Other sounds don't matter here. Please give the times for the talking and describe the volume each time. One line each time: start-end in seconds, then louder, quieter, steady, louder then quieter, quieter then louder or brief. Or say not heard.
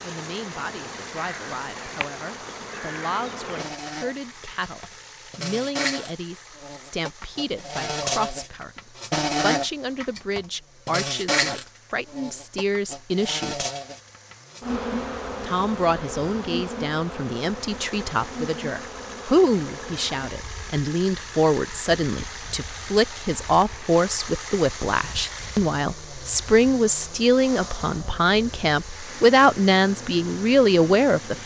0.0-13.7 louder
15.4-31.4 louder.